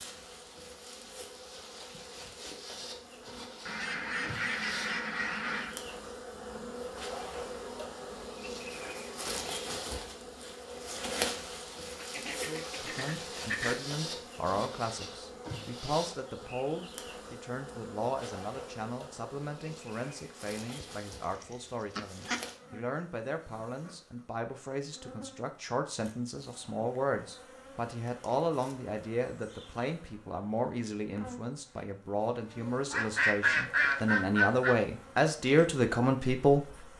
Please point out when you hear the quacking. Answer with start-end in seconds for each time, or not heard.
3.6-5.8, 11.9-13.8, 20.7-22.5, 32.9-34.8.